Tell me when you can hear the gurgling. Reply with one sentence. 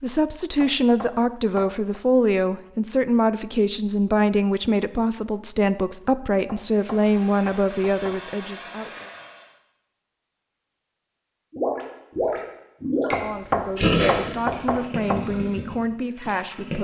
The gurgling can be heard from 11.5 to 16.7 s.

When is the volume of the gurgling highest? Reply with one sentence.
The volume of the gurgling peaks at 14 seconds.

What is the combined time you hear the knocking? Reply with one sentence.
The knocking can be heard for 5 seconds in total.